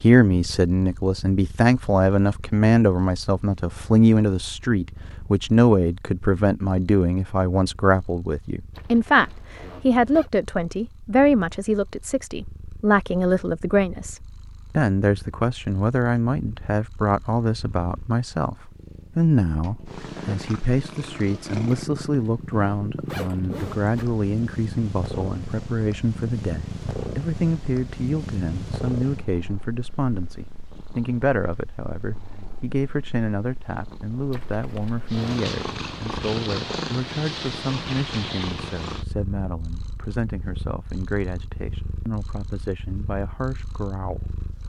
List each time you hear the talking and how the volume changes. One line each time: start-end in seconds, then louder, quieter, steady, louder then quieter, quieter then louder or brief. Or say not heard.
0.0-44.4 quieter.